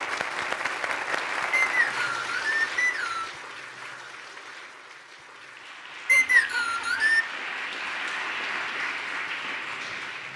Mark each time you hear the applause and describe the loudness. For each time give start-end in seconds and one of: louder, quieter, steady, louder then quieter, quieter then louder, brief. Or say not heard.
0.0-10.3 quieter then louder.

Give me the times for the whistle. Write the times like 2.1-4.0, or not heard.
1.5-3.3, 6.0-7.2.